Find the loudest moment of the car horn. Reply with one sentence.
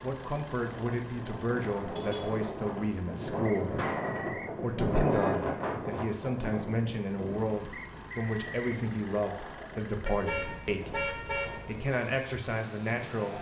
The volume of the car horn peaks at 11 seconds.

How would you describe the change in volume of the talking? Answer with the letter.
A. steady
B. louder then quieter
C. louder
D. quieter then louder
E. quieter
A.